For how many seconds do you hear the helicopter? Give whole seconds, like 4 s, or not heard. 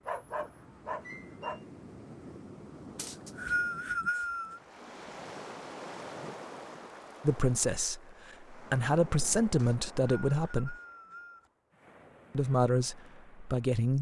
not heard.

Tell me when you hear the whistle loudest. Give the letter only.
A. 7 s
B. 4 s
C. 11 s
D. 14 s
B.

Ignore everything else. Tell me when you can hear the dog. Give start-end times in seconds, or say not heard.
0.1-1.6.